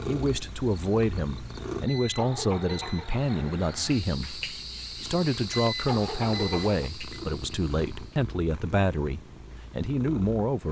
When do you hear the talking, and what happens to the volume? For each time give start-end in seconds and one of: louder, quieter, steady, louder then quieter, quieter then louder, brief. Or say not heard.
0.0-10.6 steady.